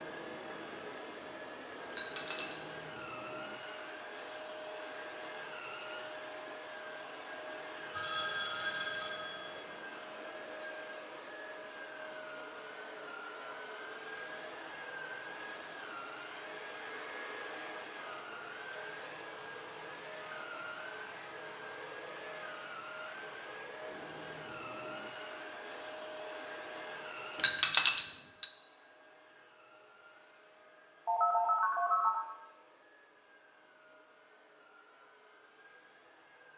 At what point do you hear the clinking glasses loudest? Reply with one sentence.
The loudest moment of the clinking glasses is at 28 seconds.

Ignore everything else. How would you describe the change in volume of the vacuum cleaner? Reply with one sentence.
The loudness of the vacuum cleaner goes down.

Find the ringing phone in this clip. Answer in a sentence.
You can hear the ringing phone from 7.9 to 9.8 s and from 31.1 to 32.2 s.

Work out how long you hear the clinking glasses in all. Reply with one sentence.
You can hear the clinking glasses for 2 seconds altogether.